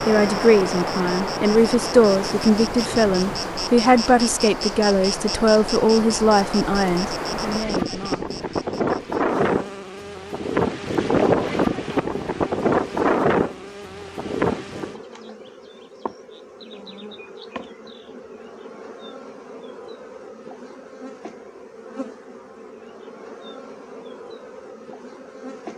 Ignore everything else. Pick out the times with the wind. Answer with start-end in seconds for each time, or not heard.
0.0-15.0.